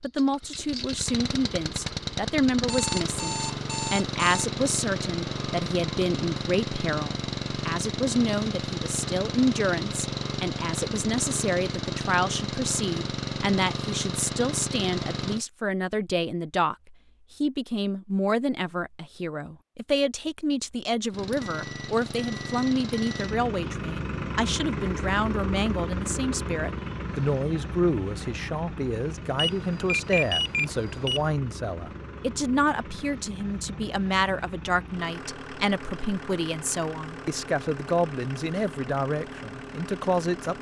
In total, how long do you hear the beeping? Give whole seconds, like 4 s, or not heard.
6 s.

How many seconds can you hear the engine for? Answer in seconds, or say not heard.
35 s.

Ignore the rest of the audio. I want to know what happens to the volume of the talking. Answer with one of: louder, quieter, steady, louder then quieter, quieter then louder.
steady.